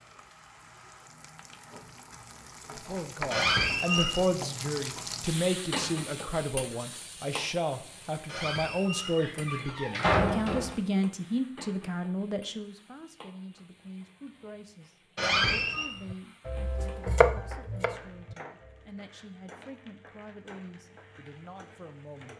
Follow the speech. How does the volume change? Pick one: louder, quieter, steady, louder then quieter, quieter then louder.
quieter.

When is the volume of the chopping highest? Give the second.
17 s.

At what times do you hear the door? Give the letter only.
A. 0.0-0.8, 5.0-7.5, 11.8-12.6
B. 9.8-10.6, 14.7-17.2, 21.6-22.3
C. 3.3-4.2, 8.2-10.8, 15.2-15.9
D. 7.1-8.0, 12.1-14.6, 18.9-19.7
C.